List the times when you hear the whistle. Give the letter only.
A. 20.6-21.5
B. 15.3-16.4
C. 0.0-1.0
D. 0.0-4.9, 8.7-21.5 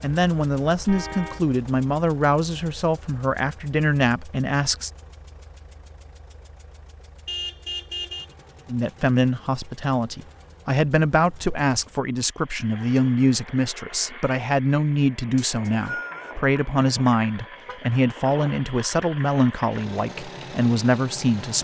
B.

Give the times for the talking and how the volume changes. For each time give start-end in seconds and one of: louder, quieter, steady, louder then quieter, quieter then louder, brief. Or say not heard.
0.0-4.9 steady
8.7-21.5 steady.